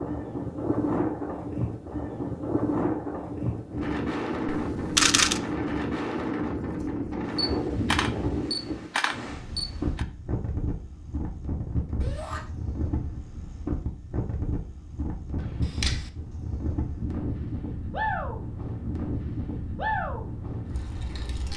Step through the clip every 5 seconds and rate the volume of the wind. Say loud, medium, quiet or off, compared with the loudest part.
loud, loud, medium, loud, medium.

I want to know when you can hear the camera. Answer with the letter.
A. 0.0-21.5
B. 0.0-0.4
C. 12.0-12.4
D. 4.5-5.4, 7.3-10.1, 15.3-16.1
D.